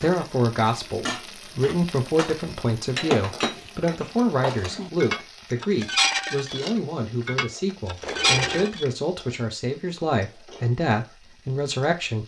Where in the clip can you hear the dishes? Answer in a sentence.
The dishes can be heard from 0.0 to 8.8 s.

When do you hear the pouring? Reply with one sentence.
The pouring can be heard from 8.0 to 8.8 s.